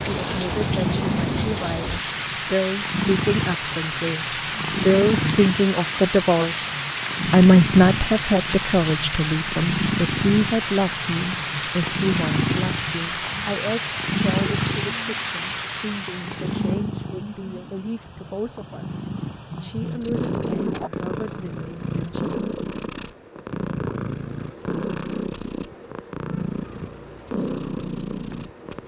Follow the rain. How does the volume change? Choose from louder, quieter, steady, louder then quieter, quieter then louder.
steady.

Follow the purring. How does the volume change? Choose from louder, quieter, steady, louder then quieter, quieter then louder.
steady.